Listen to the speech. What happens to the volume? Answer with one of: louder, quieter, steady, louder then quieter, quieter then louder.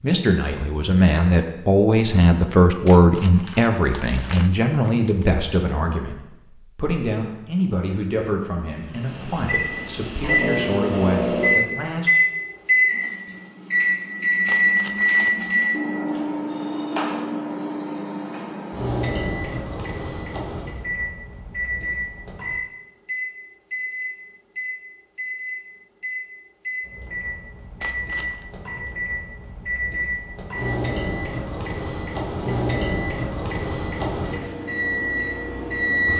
quieter.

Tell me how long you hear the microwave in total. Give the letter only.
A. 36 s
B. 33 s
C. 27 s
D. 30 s
C.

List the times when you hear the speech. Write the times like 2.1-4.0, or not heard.
0.0-12.1.